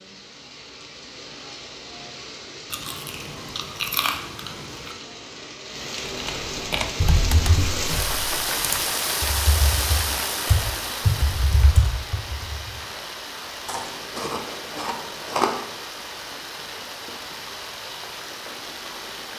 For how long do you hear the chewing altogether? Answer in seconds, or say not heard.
4 s.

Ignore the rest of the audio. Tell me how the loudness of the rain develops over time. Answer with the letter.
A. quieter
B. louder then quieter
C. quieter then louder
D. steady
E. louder
B.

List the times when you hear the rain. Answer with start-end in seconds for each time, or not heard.
0.0-19.3.